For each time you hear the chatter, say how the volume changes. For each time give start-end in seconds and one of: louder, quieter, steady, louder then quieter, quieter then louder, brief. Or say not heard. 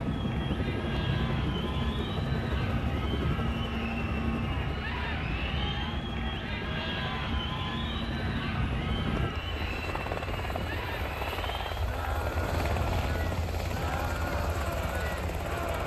0.0-15.8 steady.